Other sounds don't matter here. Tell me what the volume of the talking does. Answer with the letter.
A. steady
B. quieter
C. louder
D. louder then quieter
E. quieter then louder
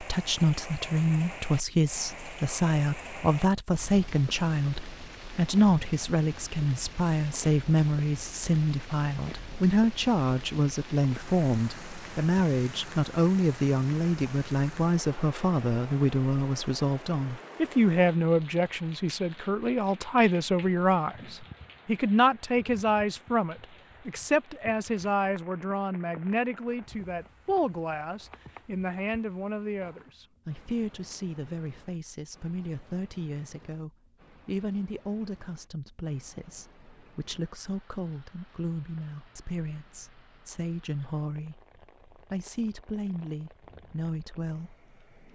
B.